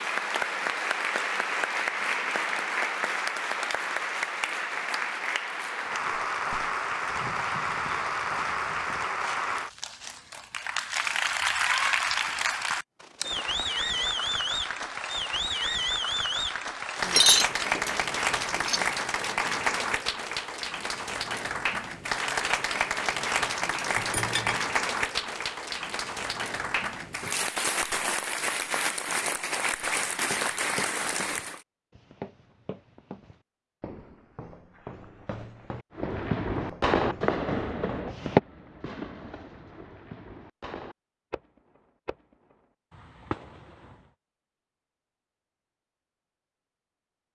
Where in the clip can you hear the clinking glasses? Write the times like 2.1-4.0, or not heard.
17.1-18.9, 23.9-24.6.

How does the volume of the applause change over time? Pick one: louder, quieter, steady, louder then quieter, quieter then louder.
steady.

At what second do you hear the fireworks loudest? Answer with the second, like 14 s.
37 s.